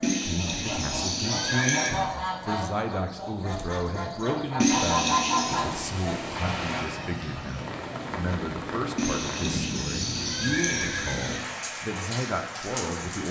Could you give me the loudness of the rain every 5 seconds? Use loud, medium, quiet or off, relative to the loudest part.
off, loud, loud.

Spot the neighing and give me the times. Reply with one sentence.
You can hear the neighing from 0.0 to 1.9 s, from 4.5 to 5.6 s and from 8.9 to 11.4 s.